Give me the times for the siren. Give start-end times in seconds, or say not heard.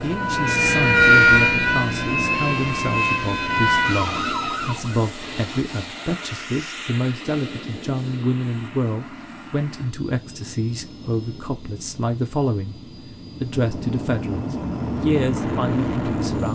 0.0-5.1.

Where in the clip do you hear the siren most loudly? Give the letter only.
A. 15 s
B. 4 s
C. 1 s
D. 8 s
C.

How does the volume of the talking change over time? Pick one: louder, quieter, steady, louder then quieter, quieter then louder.
steady.